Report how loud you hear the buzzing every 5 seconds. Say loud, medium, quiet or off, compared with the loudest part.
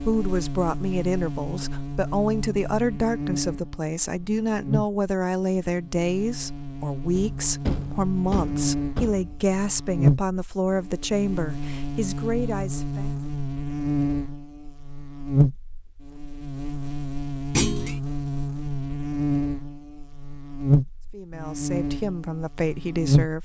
medium, medium, loud, loud, loud.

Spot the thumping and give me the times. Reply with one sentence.
The thumping can be heard from 7.2 to 9.5 s and from 17.5 to 17.9 s.